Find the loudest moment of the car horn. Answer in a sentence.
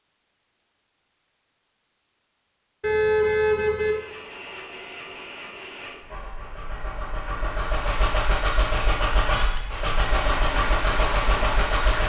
The volume of the car horn peaks at 3 seconds.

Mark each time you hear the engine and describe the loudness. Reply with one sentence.
You can hear the engine from 3.8 to 12.0 s, getting louder.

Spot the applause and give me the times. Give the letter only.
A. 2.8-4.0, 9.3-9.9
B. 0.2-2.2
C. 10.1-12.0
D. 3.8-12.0
C.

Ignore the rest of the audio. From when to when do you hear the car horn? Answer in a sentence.
The car horn can be heard from 2.8 to 4.0 s and from 9.3 to 9.9 s.